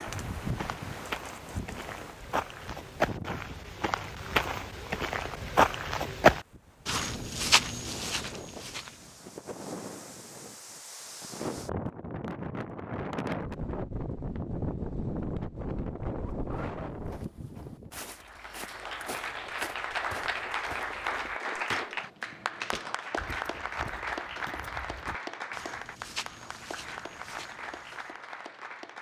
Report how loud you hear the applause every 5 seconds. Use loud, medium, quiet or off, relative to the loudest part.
off, off, off, loud, loud, medium.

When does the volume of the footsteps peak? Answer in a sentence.
The loudest moment of the footsteps is at 6 seconds.